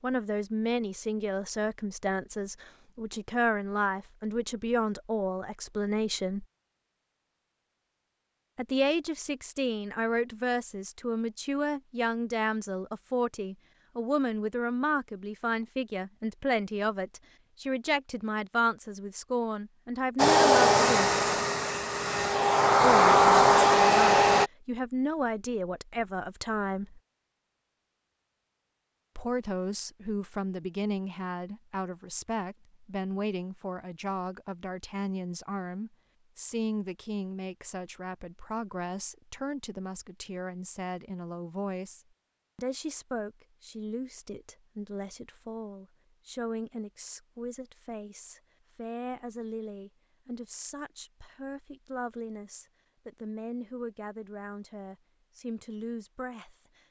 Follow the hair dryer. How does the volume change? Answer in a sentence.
The loudness of the hair dryer goes down, then up.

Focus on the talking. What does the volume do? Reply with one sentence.
The loudness of the talking goes down.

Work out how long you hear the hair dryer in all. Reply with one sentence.
You can hear the hair dryer for 4 seconds altogether.